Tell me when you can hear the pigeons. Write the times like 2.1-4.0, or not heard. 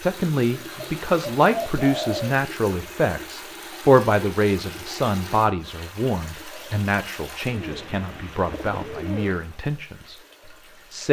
0.8-2.4, 7.5-9.4.